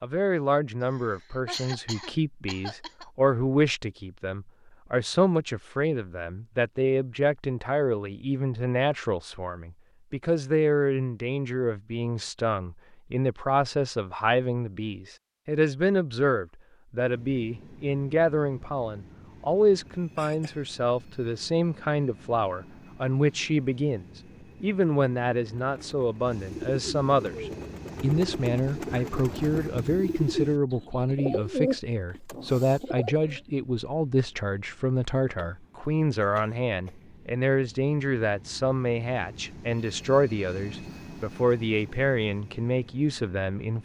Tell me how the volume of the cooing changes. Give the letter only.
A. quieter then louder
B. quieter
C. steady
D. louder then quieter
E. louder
E.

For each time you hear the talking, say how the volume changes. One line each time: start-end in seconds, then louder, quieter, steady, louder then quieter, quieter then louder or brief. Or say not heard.
0.0-43.8 steady.